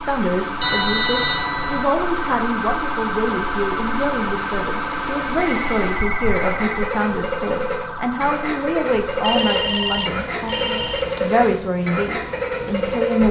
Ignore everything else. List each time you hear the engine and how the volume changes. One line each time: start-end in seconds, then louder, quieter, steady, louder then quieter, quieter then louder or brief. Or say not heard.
0.0-13.2 louder.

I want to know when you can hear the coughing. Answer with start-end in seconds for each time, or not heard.
not heard.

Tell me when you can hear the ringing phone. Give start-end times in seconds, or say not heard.
0.6-1.9, 5.3-6.8, 9.2-11.7.